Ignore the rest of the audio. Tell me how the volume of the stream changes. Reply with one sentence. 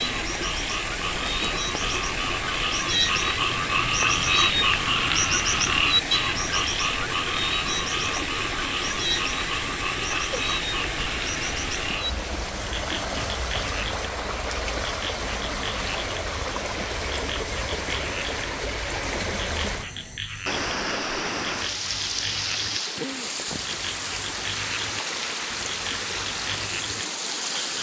The volume of the stream stays about the same.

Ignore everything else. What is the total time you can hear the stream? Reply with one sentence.
You can hear the stream for 28 seconds altogether.